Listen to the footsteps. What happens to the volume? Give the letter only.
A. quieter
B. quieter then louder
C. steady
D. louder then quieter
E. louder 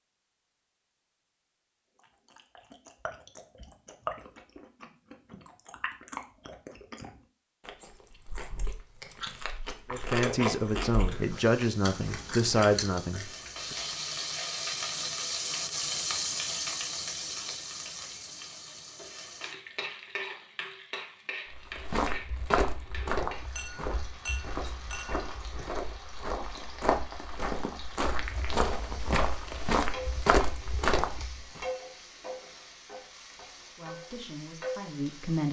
B.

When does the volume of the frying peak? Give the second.
16 s.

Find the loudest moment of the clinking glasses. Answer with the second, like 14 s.
24 s.